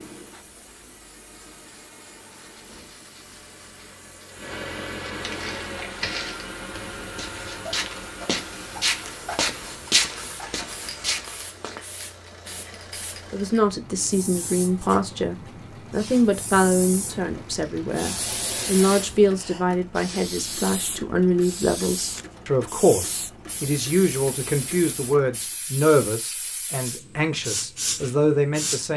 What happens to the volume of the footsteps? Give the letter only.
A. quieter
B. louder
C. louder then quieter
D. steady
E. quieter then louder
C.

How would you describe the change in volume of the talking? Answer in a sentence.
The volume of the talking stays about the same.